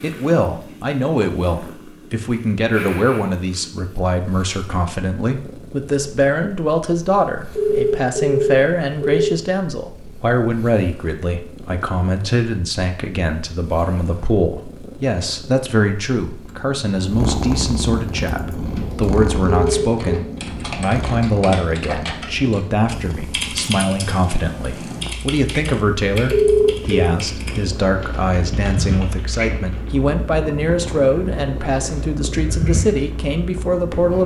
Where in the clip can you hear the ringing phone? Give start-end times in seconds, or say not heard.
7.5-9.4, 19.4-20.2, 26.3-27.1.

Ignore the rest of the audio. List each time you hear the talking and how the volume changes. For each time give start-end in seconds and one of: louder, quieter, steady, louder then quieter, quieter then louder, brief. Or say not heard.
0.0-34.2 steady.